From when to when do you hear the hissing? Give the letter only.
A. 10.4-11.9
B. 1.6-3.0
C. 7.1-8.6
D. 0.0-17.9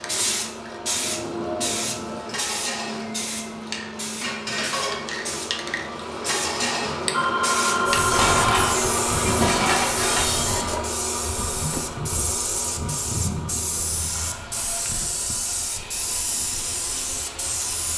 D.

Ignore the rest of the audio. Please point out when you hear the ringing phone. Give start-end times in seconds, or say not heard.
7.1-8.6.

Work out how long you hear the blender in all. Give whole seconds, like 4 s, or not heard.
18 s.